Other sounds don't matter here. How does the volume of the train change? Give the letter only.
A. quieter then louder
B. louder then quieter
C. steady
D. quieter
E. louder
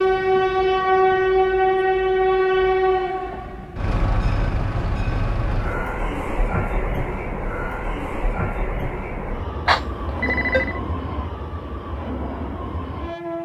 D.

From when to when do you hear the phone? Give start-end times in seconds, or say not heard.
9.7-10.8.